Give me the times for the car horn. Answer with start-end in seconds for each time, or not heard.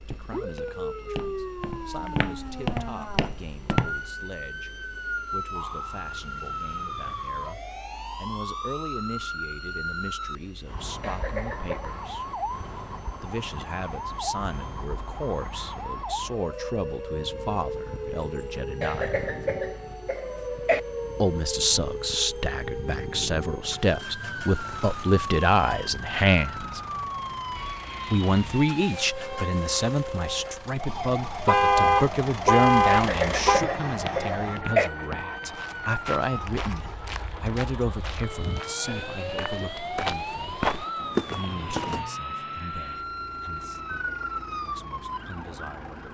31.4-33.6.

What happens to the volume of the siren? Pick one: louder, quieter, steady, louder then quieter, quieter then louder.
steady.